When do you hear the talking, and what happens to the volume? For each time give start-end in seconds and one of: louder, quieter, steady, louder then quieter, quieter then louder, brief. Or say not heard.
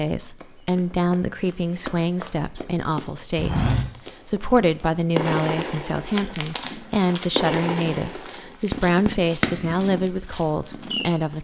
0.0-11.3 steady.